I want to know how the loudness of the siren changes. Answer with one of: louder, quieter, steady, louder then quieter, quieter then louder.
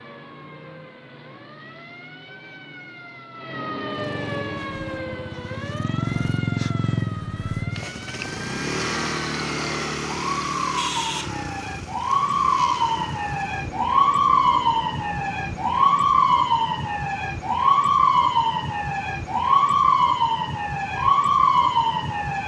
louder.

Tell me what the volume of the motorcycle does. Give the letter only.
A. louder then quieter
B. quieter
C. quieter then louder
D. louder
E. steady
B.